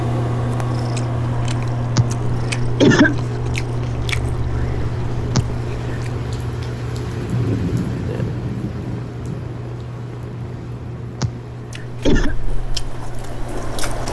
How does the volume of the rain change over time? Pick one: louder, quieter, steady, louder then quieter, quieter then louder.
louder then quieter.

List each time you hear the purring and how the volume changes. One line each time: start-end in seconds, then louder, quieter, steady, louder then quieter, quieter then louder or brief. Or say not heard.
0.0-14.0 quieter.